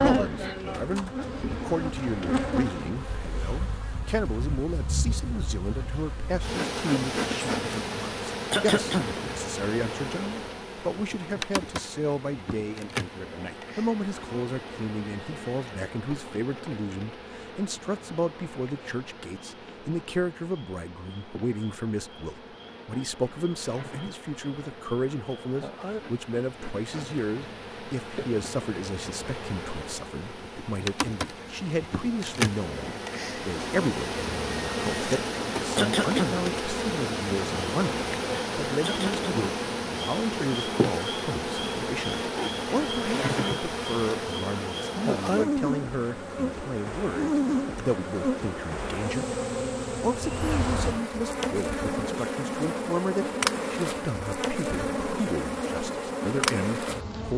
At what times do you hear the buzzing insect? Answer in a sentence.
You can hear the buzzing insect from 0.0 to 57.3 s.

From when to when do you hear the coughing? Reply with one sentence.
You can hear the coughing from 8.5 to 9.2 s, from 35.8 to 36.4 s and from 38.8 to 39.5 s.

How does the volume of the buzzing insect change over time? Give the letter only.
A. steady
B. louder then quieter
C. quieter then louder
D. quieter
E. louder
C.